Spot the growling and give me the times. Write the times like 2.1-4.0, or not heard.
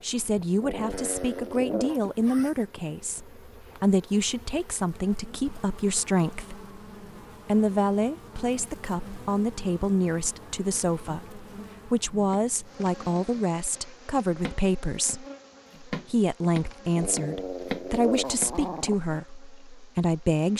0.6-2.0, 16.9-18.9.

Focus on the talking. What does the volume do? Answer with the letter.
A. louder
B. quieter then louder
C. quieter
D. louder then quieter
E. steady
E.